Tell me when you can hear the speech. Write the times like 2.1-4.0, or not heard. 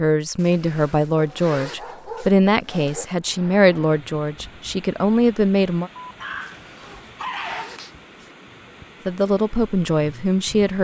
0.0-5.9, 9.1-10.7.